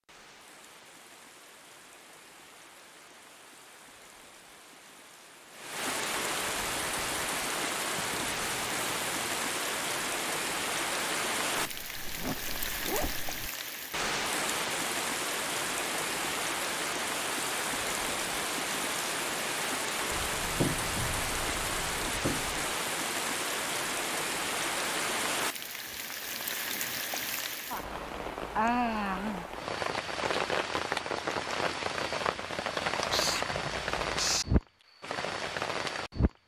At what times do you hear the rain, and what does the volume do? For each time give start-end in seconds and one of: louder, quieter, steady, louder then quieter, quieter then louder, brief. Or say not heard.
0.1-36.3 louder.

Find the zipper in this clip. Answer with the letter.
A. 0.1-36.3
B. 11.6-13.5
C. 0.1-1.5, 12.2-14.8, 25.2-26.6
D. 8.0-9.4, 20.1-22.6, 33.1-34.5
B.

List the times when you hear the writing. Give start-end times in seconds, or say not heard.
8.0-9.4, 20.1-22.6, 33.1-34.5.